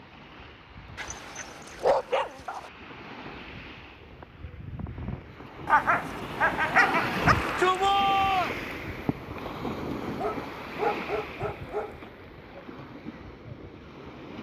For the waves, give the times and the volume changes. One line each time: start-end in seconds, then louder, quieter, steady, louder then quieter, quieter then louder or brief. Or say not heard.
0.0-14.3 louder then quieter.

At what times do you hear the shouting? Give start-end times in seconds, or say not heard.
7.2-8.6.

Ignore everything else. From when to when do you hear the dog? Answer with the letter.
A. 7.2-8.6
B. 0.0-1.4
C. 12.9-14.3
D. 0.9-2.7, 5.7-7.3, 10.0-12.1
D.